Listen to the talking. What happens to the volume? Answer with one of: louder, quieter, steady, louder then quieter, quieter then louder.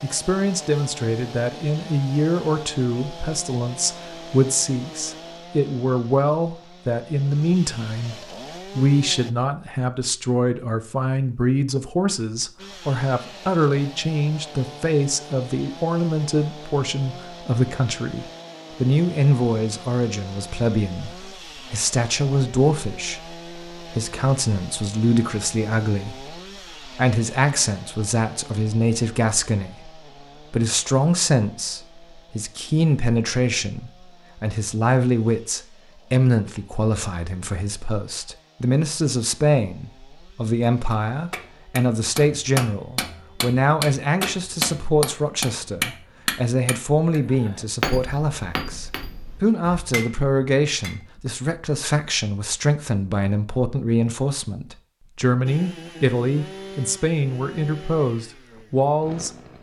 steady.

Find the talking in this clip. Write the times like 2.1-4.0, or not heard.
0.0-59.3.